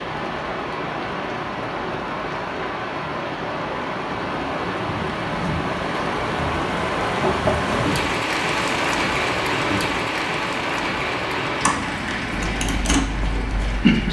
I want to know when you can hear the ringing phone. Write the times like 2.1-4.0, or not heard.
not heard.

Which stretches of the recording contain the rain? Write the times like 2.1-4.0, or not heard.
0.0-14.0.